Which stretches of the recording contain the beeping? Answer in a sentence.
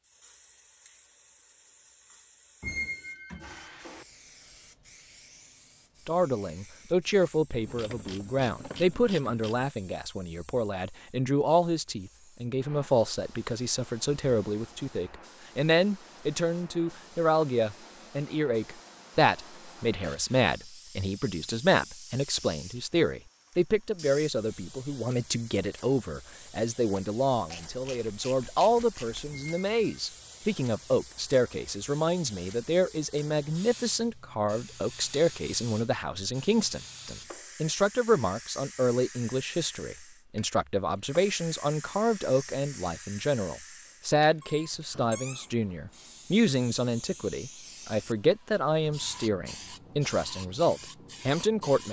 You can't hear the beeping here.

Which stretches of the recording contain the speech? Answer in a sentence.
The speech can be heard from 6.0 to 51.8 s.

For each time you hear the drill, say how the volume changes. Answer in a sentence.
You can't hear the drill here.